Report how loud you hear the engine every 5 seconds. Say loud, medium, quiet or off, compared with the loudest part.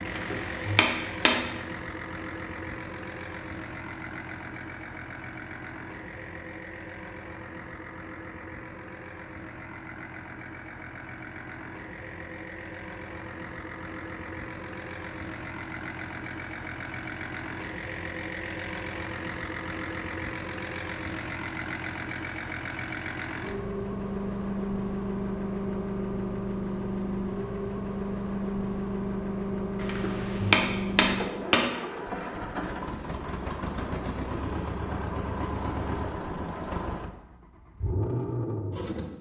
medium, medium, medium, medium, loud, loud, loud, loud.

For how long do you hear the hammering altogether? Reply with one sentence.
The hammering can be heard for 3 seconds in total.